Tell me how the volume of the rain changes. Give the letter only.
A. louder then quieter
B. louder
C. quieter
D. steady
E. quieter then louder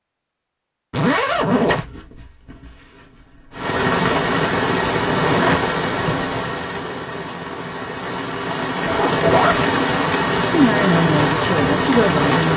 E.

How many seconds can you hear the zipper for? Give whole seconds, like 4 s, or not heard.
3 s.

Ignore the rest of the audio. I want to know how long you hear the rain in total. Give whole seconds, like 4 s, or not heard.
9 s.